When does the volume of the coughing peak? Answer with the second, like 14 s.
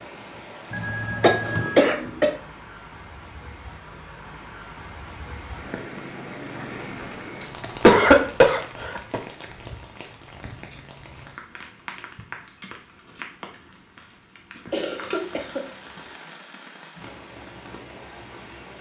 8 s.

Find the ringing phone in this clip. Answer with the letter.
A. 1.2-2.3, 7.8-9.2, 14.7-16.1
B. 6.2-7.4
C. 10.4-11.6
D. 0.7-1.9
D.